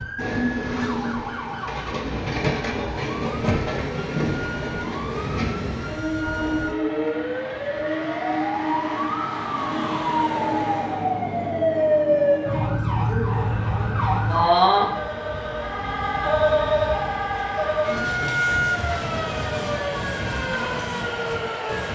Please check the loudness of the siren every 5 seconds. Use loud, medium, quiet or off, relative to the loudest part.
quiet, medium, loud, loud, medium.